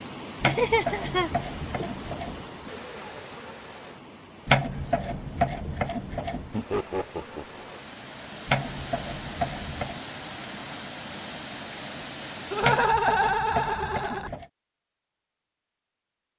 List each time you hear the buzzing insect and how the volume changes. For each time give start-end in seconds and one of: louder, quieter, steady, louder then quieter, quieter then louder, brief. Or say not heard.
not heard.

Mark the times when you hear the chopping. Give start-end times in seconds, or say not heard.
0.4-2.5, 4.5-6.5, 8.4-10.0, 12.6-14.4.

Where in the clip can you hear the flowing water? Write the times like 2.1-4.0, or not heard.
0.0-12.8.